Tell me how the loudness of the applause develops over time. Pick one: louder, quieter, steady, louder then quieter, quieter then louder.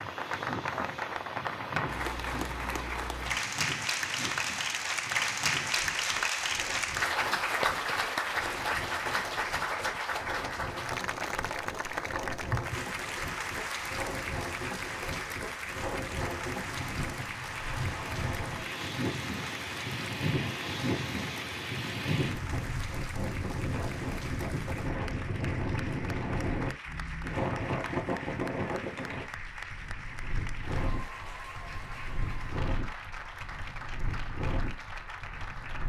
quieter.